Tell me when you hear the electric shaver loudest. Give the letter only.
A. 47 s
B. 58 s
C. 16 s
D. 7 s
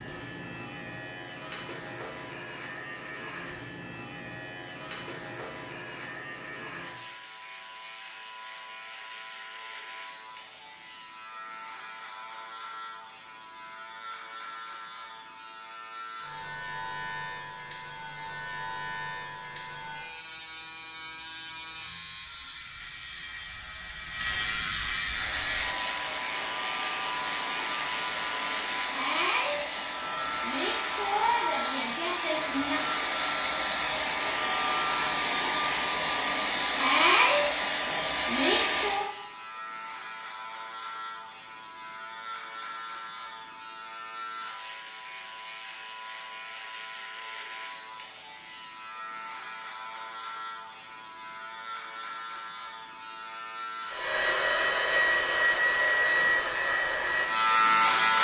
B.